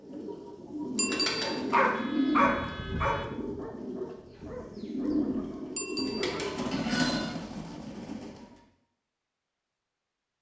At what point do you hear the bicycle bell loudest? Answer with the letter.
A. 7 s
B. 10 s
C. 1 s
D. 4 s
C.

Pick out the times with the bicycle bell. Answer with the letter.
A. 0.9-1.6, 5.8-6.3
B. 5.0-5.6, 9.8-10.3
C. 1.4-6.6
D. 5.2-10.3
A.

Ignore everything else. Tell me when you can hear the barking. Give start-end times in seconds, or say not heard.
1.4-6.6.